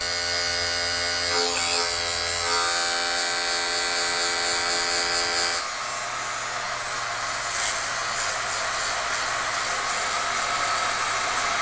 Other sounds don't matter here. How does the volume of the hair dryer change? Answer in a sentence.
The volume of the hair dryer goes up.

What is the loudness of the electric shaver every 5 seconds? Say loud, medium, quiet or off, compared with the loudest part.
loud, medium, medium.